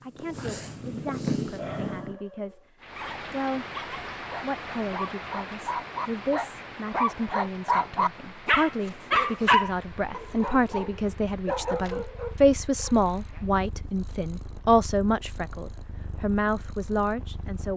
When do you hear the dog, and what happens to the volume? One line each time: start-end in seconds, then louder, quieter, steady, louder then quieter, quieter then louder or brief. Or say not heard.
1.4-12.9 louder then quieter.